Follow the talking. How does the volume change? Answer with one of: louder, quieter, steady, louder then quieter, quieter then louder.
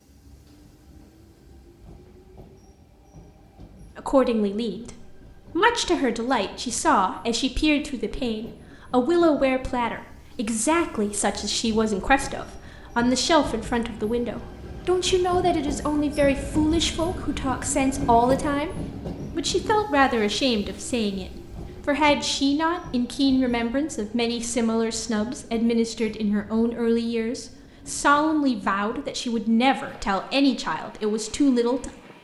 steady.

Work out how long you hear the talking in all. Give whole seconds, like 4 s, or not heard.
28 s.